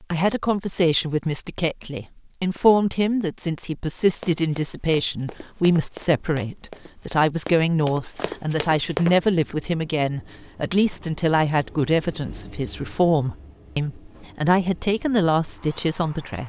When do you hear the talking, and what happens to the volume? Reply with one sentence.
The talking can be heard from 0.0 to 16.4 s, at a steady volume.